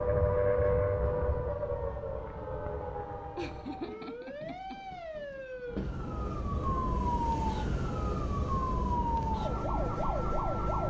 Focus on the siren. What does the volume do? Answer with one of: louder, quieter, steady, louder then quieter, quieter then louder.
quieter then louder.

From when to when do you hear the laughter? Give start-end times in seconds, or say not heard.
3.4-4.8.